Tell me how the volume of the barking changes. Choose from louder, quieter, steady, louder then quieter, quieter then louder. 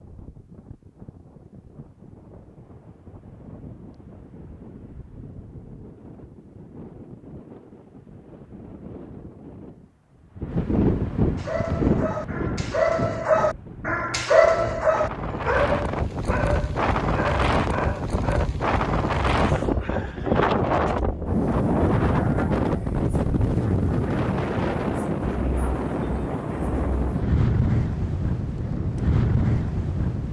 louder then quieter.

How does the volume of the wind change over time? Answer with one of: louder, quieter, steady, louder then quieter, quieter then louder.
louder.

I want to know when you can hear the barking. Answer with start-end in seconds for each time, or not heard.
11.3-18.5.